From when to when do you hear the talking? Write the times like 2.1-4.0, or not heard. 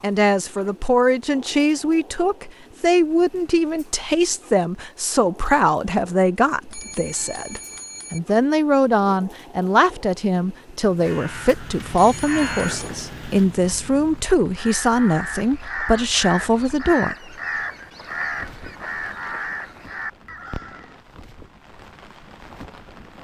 0.0-17.1.